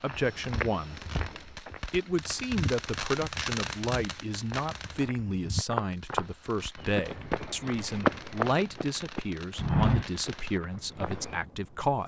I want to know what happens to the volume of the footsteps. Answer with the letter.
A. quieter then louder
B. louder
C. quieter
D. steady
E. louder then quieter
B.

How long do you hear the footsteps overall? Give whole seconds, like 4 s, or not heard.
11 s.